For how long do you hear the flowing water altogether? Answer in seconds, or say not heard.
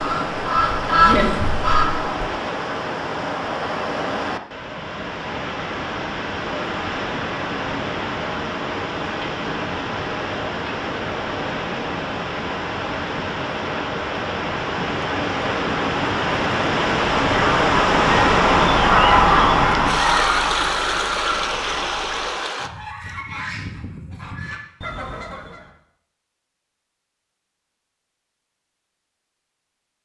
23 s.